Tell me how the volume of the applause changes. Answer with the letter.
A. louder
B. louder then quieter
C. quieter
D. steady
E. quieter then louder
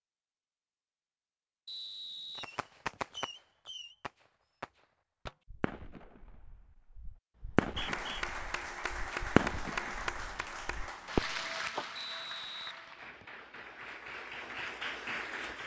E.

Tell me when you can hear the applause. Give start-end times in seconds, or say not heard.
7.8-15.6.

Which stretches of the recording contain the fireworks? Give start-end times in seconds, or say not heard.
2.4-11.8.